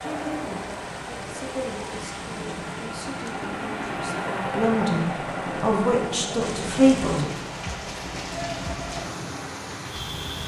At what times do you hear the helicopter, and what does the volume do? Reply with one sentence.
You can hear the helicopter from 0.0 to 10.4 s, getting louder then quieter.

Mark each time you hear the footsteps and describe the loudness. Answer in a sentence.
You can't hear the footsteps here.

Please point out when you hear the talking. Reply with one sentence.
The talking can be heard from 0.0 to 7.3 s.